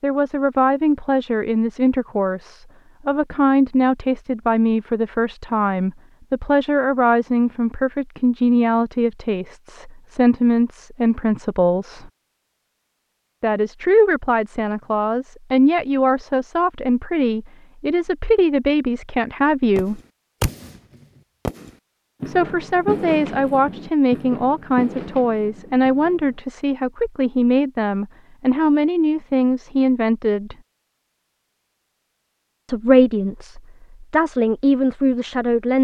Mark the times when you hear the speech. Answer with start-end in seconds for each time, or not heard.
0.0-12.1, 13.4-20.0, 22.2-30.6, 32.6-35.8.